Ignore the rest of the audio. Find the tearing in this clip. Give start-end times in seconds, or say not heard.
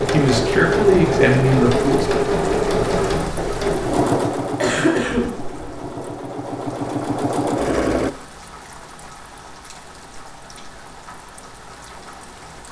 not heard.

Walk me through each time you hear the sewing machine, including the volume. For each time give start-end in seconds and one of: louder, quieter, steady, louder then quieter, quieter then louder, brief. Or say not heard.
0.0-8.1 quieter then louder.